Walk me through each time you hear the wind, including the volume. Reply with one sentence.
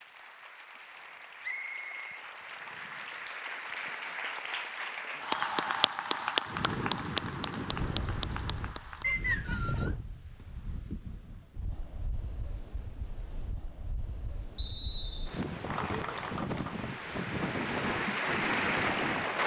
The wind can be heard from 6.5 to 19.4 s, getting quieter then louder.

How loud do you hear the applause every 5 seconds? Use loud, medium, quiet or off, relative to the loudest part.
medium, loud, off, loud.